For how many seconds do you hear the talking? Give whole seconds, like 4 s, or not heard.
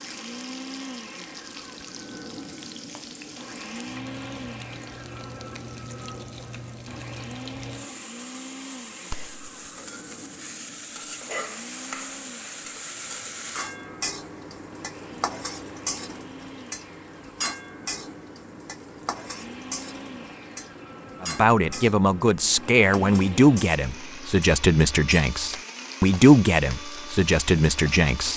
7 s.